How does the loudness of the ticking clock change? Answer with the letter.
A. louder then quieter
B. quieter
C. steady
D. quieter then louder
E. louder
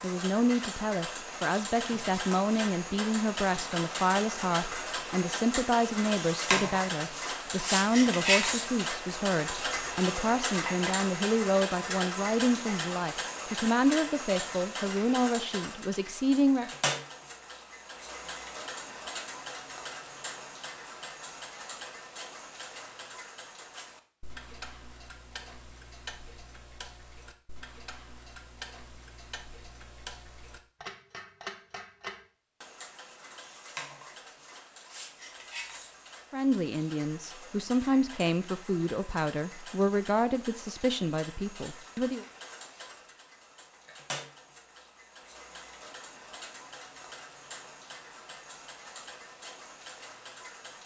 B.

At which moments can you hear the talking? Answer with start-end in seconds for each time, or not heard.
0.0-16.7, 36.3-42.2.